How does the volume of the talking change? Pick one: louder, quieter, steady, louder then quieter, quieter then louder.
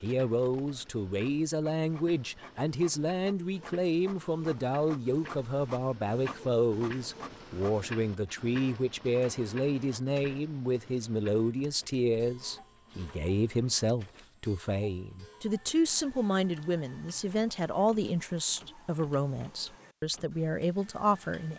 steady.